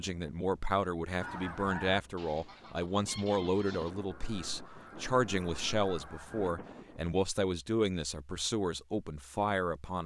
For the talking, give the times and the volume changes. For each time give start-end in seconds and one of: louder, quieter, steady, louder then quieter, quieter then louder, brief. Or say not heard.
0.0-10.0 steady.